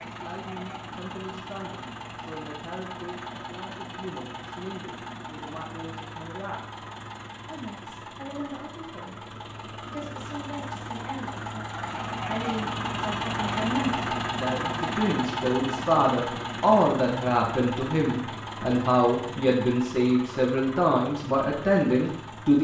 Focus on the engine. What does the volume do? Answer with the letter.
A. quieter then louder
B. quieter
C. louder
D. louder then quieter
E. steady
D.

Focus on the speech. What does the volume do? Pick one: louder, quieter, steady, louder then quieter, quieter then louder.
louder.